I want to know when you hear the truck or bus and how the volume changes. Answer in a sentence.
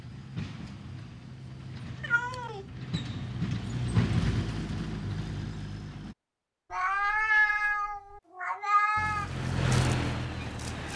The truck or bus can be heard from 0.0 to 6.2 s, getting louder then quieter; and briefly from 8.9 to 10.9 s.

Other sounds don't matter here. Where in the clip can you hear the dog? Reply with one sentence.
You can't hear the dog here.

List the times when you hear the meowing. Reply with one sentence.
You can hear the meowing from 2.0 to 2.6 s and from 6.7 to 9.3 s.